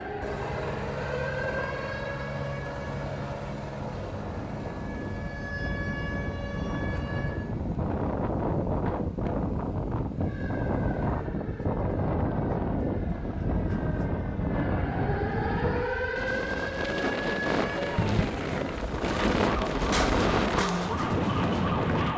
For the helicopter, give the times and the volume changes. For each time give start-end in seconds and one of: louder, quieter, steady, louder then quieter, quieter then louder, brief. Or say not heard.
0.0-11.3 quieter.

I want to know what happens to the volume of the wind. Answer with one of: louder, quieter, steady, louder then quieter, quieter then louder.
louder.